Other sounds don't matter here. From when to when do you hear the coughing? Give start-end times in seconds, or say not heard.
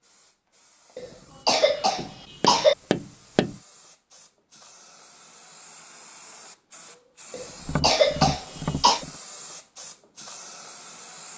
0.9-2.8, 7.3-9.1.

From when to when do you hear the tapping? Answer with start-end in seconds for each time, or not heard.
1.9-3.5, 7.6-9.2.